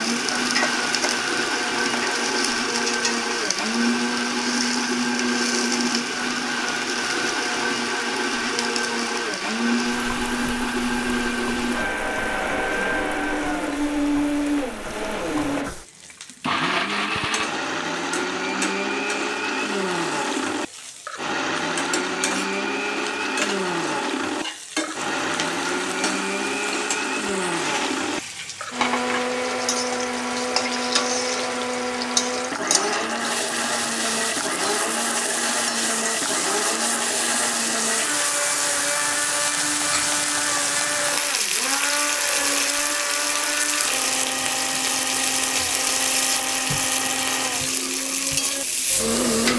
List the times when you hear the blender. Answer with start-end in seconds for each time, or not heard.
0.0-49.5.